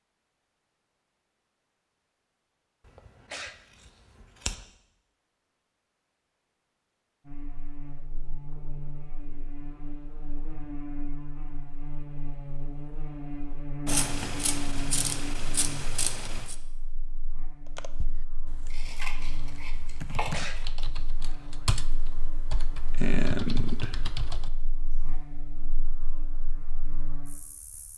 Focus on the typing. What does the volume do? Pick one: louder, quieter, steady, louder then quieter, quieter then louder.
louder.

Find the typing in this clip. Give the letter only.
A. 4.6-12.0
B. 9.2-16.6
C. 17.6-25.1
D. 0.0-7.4
C.